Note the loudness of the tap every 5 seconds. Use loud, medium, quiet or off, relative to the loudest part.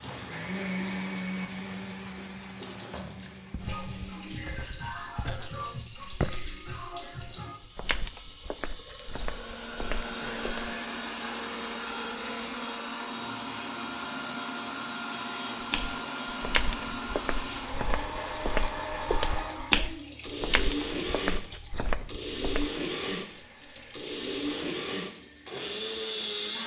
loud, loud, medium, medium, medium, medium.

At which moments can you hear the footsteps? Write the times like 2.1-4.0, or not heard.
3.5-10.7, 15.6-22.7.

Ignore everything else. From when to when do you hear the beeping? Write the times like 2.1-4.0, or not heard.
not heard.